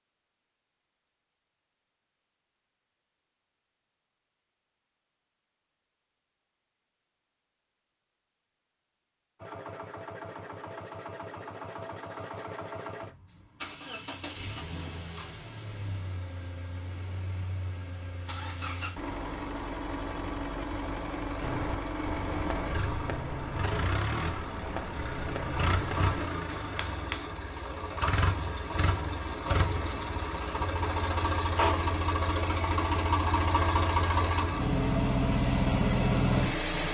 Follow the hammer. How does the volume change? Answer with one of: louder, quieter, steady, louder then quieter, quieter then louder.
steady.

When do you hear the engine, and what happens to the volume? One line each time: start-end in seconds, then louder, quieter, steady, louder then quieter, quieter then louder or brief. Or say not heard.
9.4-36.8 louder.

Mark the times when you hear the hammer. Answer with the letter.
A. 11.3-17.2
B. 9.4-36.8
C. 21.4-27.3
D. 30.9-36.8
C.